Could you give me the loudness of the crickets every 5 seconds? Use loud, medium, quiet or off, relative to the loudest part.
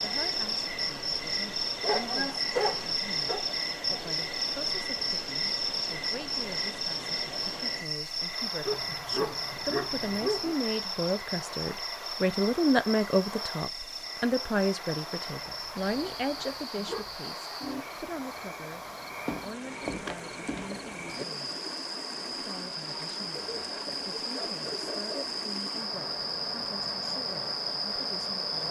loud, loud, medium, medium, medium, loud.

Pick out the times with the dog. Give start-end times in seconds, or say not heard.
1.8-3.4, 8.7-10.6, 15.4-17.1, 23.4-25.4.